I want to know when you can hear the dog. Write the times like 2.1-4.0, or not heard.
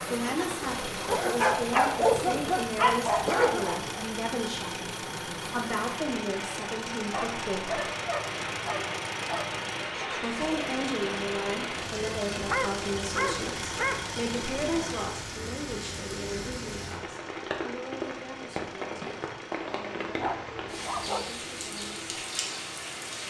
1.1-4.0, 7.1-9.6, 12.3-14.1, 20.1-21.4.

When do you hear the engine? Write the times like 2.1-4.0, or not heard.
0.0-23.2.